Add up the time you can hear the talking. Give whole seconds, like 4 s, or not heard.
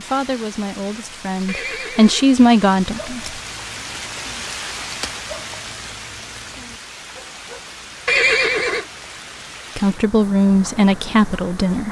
5 s.